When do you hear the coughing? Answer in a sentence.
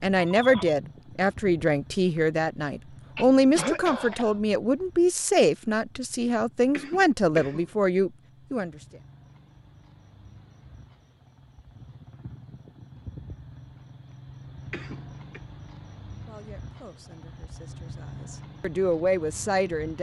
You can hear the coughing from 3.1 to 4.3 s, from 6.7 to 7.7 s and from 14.7 to 15.4 s.